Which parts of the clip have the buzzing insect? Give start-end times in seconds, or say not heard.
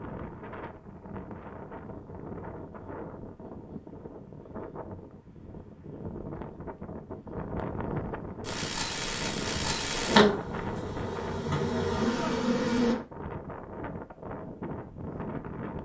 8.4-12.9.